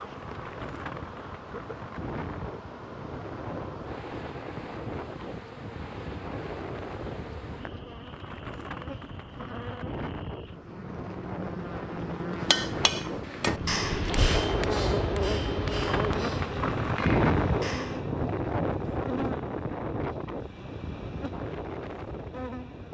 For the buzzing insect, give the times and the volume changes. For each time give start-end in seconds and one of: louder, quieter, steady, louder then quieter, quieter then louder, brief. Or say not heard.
0.0-22.8 louder then quieter.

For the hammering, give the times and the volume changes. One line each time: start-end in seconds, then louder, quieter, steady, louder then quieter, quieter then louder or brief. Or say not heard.
12.4-18.1 quieter.